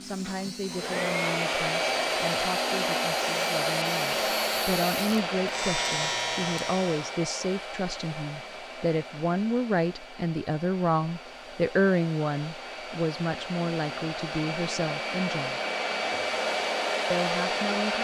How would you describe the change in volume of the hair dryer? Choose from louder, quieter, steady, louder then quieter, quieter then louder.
quieter then louder.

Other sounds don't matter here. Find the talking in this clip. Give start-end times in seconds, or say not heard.
0.0-15.6, 17.1-18.0.